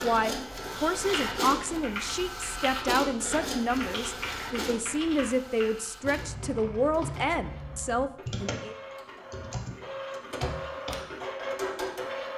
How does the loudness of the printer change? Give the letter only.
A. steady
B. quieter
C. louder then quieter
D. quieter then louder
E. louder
D.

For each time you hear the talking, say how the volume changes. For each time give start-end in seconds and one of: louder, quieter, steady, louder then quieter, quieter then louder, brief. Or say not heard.
0.0-8.8 steady.